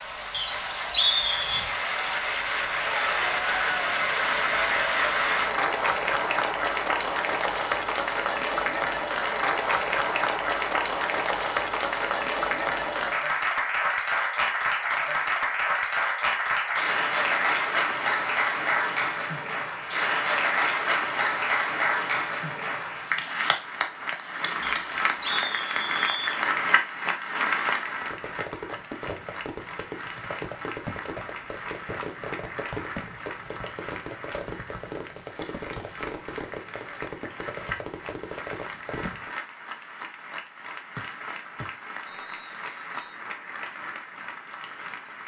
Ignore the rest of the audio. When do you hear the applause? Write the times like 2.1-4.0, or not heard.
0.0-45.2.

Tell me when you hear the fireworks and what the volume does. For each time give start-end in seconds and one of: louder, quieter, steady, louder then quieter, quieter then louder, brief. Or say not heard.
27.9-39.4 steady.